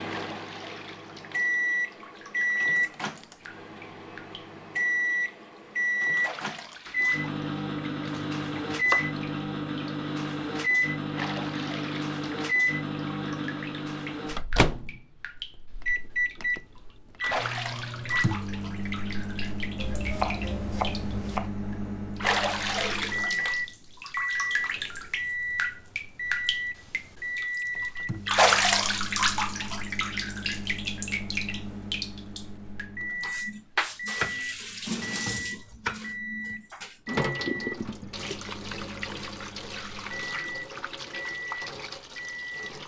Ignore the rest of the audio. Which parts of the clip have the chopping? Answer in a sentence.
You can hear the chopping from 8.1 to 9.1 s, from 19.8 to 21.5 s and from 34.1 to 36.5 s.